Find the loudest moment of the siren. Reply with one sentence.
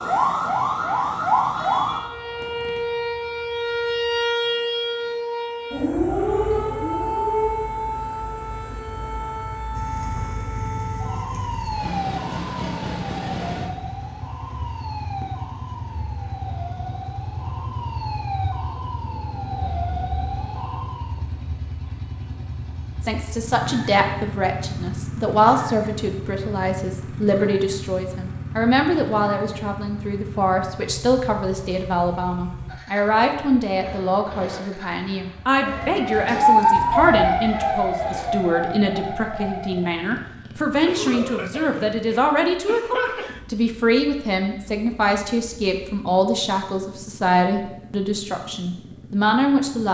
The volume of the siren peaks at 37 seconds.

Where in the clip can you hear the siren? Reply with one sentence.
You can hear the siren from 0.0 to 21.2 s and from 35.6 to 40.0 s.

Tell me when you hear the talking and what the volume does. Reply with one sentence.
You can hear the talking from 23.0 to 49.8 s, at a steady volume.